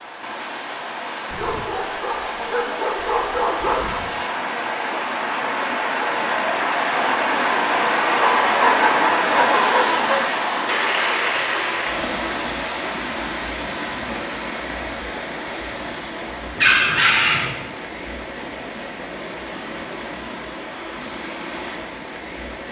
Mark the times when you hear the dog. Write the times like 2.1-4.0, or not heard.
1.3-4.1, 8.2-10.2, 16.6-17.5.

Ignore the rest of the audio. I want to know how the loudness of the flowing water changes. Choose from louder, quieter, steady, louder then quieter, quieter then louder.
louder then quieter.